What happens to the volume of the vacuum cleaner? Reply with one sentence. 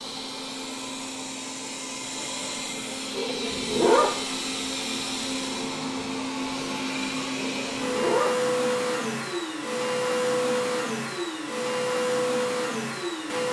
The loudness of the vacuum cleaner goes up.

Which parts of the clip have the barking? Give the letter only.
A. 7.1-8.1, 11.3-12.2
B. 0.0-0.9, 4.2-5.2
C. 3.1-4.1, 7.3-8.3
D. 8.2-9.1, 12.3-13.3
C.